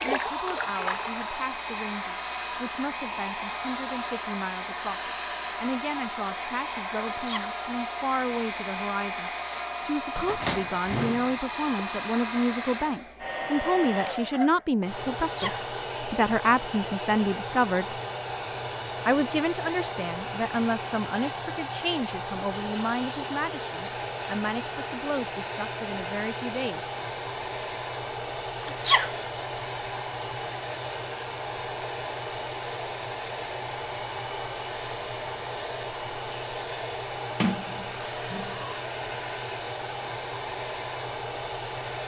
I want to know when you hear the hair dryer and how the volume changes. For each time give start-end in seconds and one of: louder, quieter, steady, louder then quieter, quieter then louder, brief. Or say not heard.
0.0-42.0 steady.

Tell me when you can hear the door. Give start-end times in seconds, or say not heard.
10.2-11.8, 37.4-38.5.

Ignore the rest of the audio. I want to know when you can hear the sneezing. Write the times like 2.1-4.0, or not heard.
7.0-7.5, 15.2-15.7, 28.6-29.1.